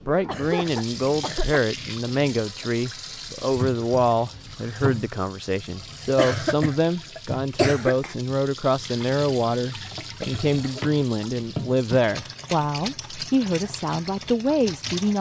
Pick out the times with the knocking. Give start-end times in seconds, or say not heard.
not heard.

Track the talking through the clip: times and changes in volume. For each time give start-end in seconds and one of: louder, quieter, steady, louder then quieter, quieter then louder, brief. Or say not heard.
0.1-15.1 steady.